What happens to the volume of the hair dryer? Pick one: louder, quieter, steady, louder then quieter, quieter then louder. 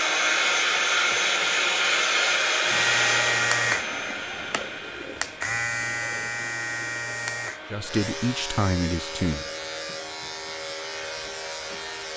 quieter.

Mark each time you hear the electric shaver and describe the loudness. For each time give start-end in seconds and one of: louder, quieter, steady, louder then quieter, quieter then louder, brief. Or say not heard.
2.6-12.1 quieter.